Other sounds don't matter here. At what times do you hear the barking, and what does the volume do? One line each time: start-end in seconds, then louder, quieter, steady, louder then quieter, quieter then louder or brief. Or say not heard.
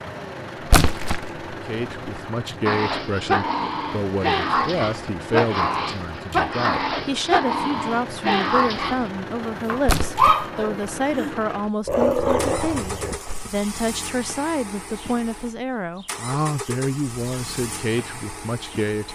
2.6-13.5 steady.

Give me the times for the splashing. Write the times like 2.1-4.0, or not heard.
0.7-1.3, 9.8-10.5.